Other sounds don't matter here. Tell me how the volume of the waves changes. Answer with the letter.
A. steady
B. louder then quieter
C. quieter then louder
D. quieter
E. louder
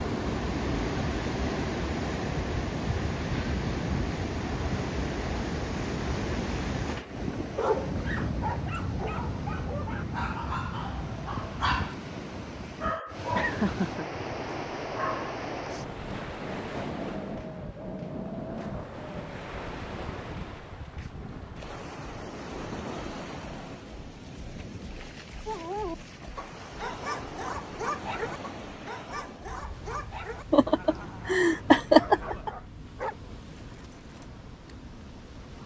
D.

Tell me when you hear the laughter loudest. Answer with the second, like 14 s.
32 s.